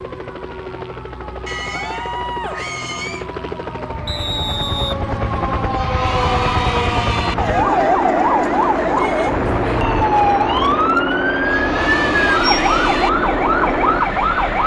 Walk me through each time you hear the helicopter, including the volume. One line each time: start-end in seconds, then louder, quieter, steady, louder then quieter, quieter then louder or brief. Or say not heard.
0.0-14.6 louder.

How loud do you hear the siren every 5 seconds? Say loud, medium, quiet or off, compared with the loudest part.
quiet, loud, loud.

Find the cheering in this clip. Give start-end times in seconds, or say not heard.
1.4-3.3, 5.3-7.3, 11.1-13.1.